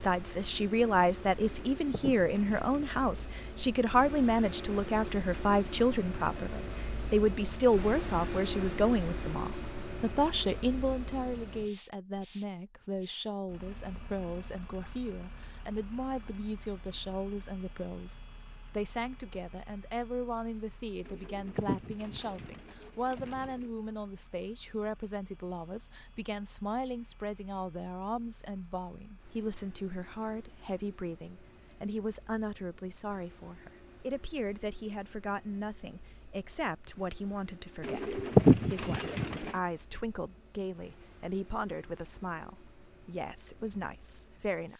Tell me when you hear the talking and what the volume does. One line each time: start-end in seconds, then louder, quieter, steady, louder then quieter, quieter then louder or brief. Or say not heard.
0.0-44.7 quieter.